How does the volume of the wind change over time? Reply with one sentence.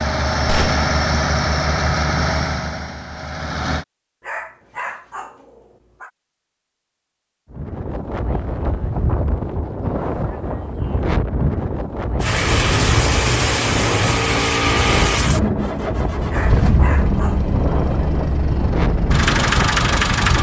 The volume of the wind stays about the same.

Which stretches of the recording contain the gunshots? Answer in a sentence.
The gunshots can be heard from 0.5 to 0.9 s.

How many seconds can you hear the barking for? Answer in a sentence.
You can hear the barking for 3 seconds altogether.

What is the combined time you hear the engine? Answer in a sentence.
You can hear the engine for 12 seconds altogether.